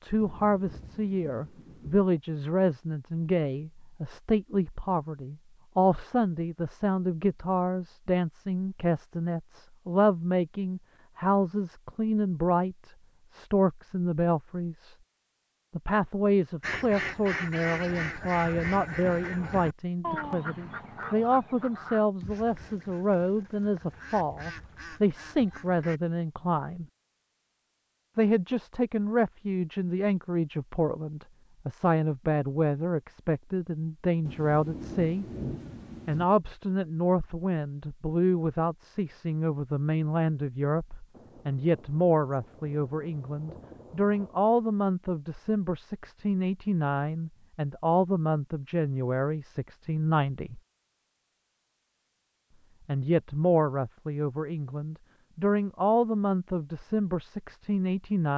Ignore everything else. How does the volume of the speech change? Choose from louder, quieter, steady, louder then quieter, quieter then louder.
steady.